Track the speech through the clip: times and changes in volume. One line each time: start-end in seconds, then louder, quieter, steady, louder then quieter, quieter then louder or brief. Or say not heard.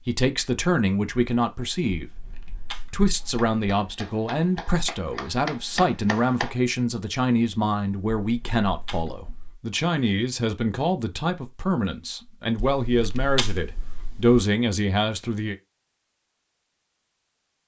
0.1-15.6 steady.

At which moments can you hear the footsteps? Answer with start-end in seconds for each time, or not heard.
not heard.